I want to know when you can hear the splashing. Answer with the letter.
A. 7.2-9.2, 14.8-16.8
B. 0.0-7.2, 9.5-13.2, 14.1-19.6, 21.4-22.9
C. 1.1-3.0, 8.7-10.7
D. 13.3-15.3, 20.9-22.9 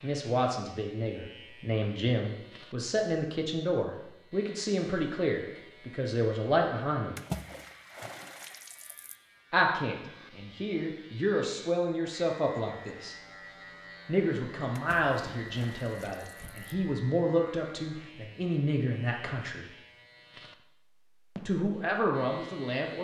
A.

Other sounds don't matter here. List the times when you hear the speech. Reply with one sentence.
The speech can be heard from 0.0 to 7.2 s, from 9.5 to 13.2 s, from 14.1 to 19.6 s and from 21.4 to 22.9 s.